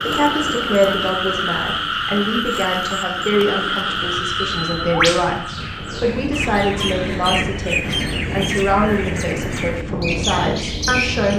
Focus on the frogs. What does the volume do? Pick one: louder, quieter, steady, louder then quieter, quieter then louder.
quieter.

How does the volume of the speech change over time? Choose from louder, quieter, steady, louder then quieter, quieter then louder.
steady.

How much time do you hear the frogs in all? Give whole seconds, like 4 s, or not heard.
7 s.